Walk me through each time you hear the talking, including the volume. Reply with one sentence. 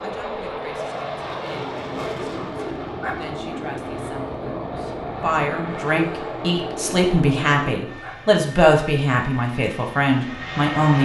The talking can be heard from 0.0 to 11.0 s, getting louder.